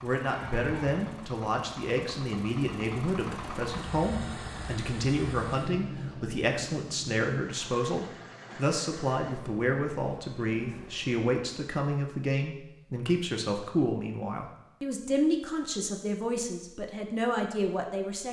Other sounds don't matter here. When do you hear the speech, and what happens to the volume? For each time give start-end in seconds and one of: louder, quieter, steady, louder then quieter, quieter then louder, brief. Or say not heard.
0.0-18.2 steady.